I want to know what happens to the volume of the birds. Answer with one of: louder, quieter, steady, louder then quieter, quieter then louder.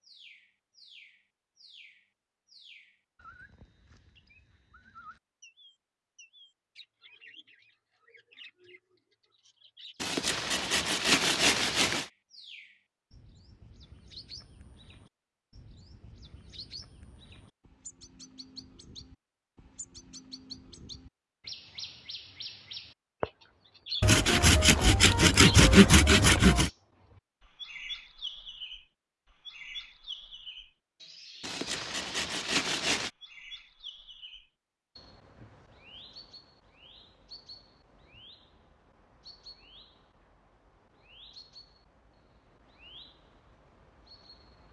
louder then quieter.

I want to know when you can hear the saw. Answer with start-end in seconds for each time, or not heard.
10.0-12.1, 24.0-26.7, 31.4-33.1.